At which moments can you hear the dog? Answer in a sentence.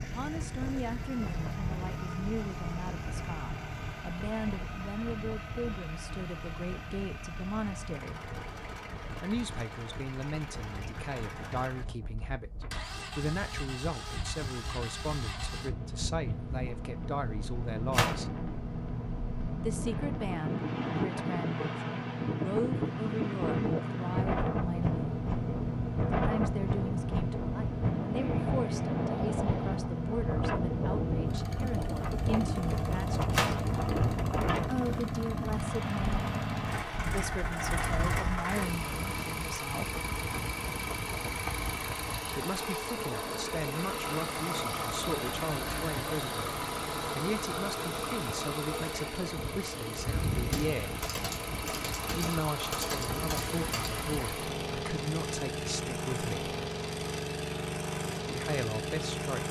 The dog can't be heard in this clip.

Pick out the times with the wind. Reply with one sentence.
The wind can be heard from 0.2 to 38.5 s.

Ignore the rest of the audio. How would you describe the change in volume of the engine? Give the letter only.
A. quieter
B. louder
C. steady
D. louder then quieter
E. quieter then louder
B.